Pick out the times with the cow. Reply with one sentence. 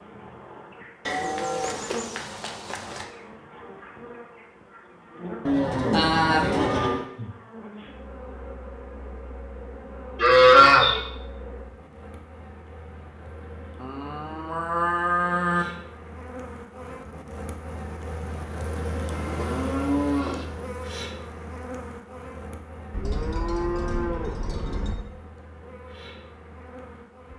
You can hear the cow from 1.1 to 3.0 s, from 5.5 to 7.0 s, from 10.2 to 11.0 s, from 13.8 to 15.7 s, from 19.1 to 20.5 s and from 22.9 to 24.9 s.